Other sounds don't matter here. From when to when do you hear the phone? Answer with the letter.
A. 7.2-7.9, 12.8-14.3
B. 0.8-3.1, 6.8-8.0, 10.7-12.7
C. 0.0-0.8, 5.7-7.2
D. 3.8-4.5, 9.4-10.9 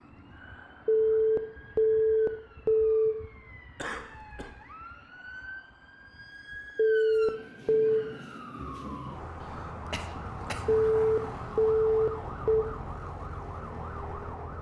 B.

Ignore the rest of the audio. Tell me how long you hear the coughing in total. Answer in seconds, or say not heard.
2 s.